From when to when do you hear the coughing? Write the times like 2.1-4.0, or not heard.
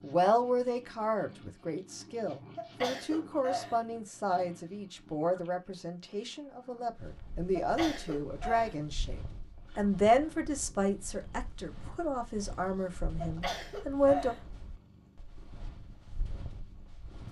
2.5-3.9, 7.5-8.8, 13.2-14.5.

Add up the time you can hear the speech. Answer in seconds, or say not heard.
14 s.